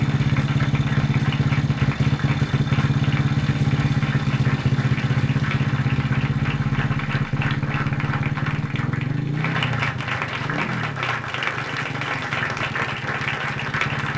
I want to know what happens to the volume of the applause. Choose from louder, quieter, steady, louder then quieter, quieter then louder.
louder.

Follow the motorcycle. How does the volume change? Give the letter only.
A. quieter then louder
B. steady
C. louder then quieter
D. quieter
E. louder
D.